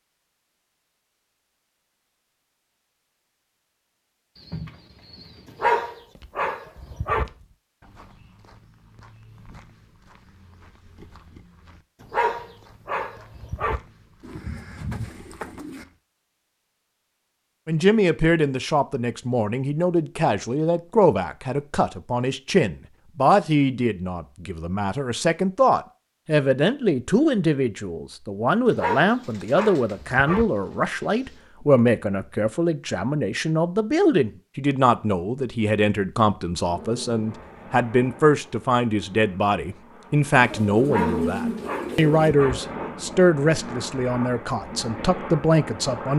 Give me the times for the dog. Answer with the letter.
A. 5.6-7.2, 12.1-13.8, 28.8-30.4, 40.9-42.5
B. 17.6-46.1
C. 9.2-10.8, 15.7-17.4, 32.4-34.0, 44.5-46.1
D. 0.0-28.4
A.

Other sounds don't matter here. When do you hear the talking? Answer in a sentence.
The talking can be heard from 17.6 to 46.1 s.